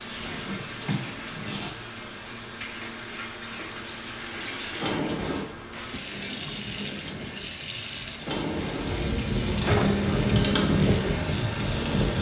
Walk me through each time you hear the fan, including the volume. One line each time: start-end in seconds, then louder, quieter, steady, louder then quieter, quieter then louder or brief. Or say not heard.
0.0-12.1 louder.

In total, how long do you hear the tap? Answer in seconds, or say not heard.
12 s.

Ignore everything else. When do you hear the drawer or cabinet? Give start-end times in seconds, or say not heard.
0.2-1.7, 4.8-5.5, 8.2-10.1.